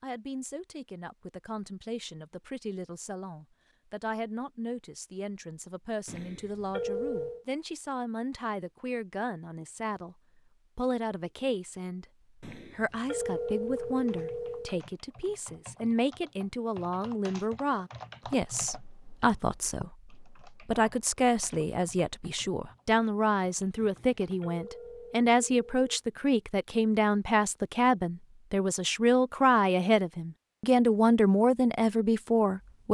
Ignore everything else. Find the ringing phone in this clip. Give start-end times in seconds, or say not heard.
6.0-7.5, 12.4-14.8, 23.8-26.0.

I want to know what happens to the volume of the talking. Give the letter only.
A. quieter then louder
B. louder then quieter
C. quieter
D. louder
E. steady
D.